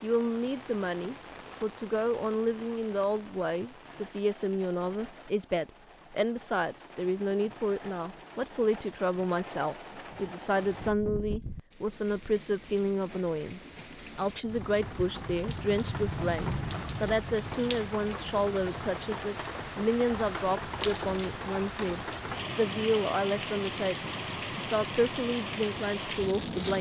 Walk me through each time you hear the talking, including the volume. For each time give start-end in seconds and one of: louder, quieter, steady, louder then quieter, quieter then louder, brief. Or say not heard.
0.0-26.7 steady.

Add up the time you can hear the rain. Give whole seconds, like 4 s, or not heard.
27 s.